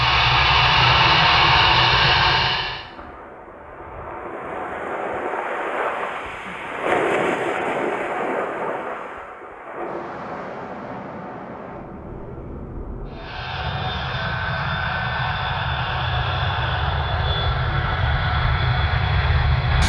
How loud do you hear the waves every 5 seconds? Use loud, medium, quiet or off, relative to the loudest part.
medium, loud, medium, off.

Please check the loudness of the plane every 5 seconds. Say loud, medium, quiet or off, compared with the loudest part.
loud, off, medium, medium.